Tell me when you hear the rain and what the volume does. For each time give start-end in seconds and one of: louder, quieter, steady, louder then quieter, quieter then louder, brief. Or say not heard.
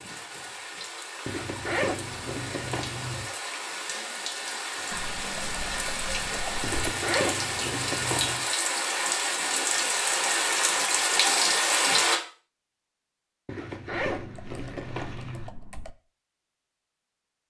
0.0-12.2 louder.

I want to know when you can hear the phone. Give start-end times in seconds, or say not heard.
not heard.